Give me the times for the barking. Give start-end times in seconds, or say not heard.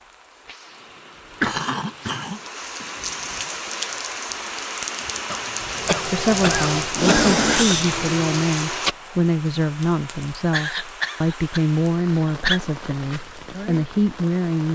not heard.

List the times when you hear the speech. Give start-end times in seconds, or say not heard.
6.0-14.6.